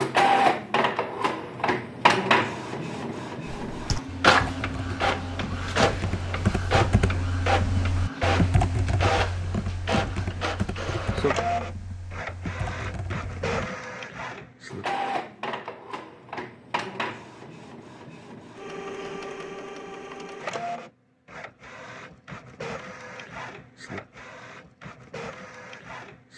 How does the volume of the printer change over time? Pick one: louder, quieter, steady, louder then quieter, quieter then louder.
quieter.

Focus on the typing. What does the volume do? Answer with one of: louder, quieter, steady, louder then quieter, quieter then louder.
louder then quieter.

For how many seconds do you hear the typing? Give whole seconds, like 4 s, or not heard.
10 s.